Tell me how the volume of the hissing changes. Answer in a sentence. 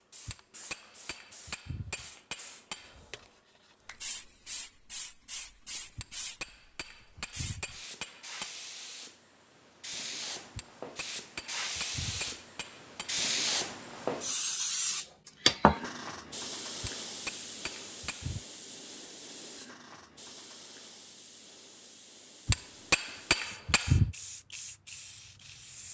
The volume of the hissing goes up, then down.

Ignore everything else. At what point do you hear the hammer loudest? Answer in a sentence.
The volume of the hammer peaks at 24 seconds.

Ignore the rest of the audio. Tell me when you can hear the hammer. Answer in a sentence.
The hammer can be heard from 0.2 to 3.2 s, from 6.0 to 8.6 s, from 10.6 to 13.2 s, from 16.8 to 18.4 s and from 22.4 to 24.1 s.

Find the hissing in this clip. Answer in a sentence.
You can hear the hissing from 0.1 to 25.9 s.